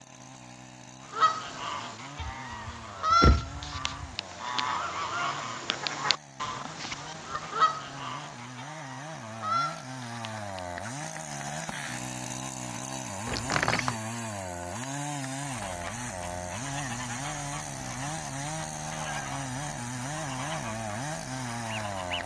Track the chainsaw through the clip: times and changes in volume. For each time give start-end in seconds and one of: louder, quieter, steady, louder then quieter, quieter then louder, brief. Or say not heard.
0.0-22.2 louder.